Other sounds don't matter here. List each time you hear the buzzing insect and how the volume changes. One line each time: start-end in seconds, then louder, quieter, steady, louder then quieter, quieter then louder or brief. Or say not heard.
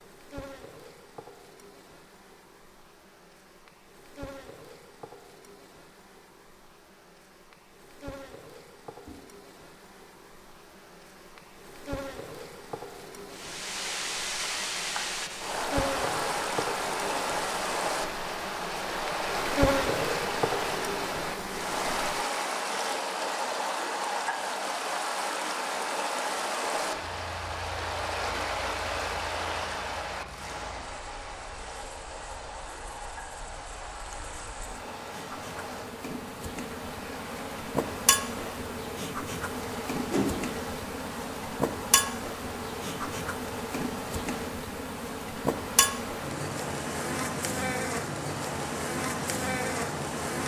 0.0-22.2 louder
26.8-50.4 louder.